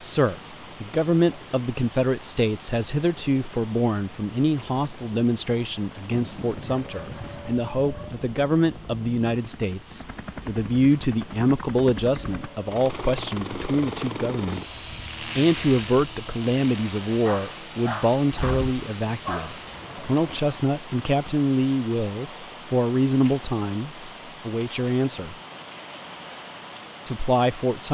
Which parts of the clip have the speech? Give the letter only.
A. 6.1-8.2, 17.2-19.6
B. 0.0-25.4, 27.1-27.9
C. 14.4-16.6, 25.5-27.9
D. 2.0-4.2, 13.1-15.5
B.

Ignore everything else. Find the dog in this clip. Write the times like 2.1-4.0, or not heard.
6.1-8.2, 17.2-19.6.